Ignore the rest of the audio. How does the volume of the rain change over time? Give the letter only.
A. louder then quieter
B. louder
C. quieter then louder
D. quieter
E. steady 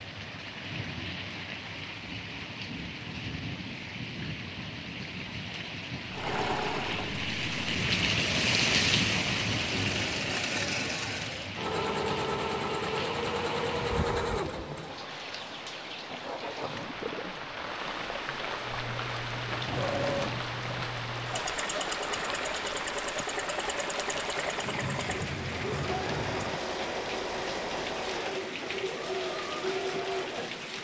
A.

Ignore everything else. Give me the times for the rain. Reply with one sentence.
The rain can be heard from 0.0 to 30.7 s.